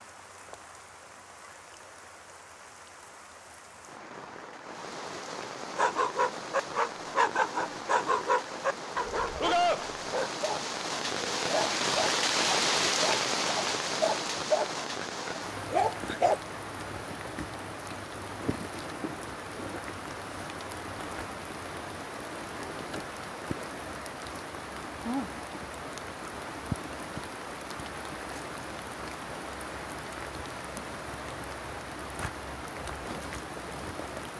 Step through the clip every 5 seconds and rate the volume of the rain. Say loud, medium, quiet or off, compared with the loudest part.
quiet, medium, loud, medium, medium, medium, medium.